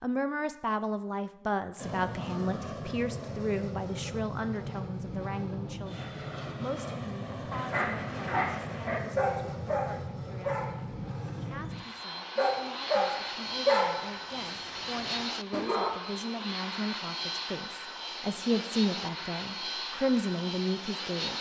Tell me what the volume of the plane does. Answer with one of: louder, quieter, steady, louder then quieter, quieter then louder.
steady.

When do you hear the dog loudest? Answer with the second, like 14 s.
14 s.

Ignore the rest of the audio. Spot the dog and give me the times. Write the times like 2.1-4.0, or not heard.
7.5-15.9.